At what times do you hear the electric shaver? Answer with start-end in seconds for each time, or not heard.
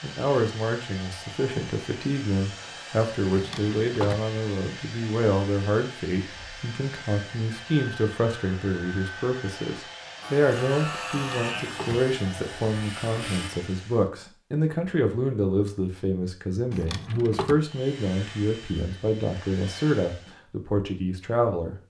10.2-13.5.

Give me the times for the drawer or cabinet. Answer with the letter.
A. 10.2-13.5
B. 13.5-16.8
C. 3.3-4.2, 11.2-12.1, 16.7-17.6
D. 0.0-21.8
C.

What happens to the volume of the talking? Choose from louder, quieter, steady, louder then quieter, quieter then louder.
steady.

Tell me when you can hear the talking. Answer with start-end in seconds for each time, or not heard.
0.0-21.8.